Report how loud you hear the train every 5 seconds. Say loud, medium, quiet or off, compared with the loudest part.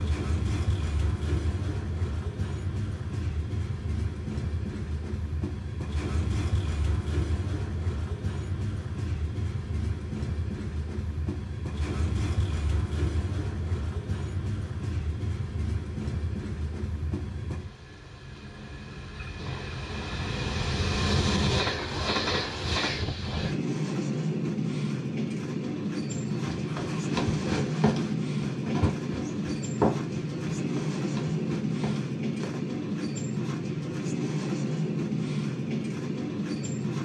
medium, medium, medium, medium, loud, loud, loud, loud.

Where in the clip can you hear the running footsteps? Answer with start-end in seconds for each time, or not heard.
26.1-32.5.